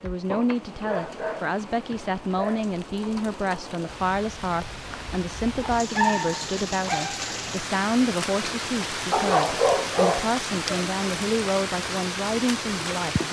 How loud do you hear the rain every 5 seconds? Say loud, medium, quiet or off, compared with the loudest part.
medium, loud, loud.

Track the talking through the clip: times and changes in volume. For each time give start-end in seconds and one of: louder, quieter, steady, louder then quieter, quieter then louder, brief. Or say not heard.
0.0-13.2 steady.